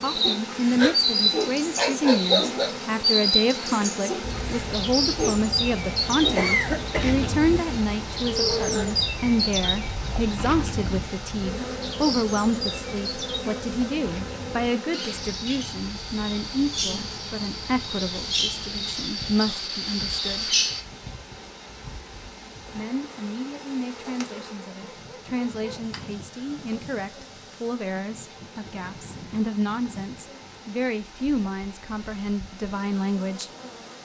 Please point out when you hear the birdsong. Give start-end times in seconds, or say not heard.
0.0-20.9.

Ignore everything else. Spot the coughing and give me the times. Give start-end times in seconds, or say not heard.
6.3-7.2.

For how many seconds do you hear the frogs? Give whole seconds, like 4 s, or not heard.
not heard.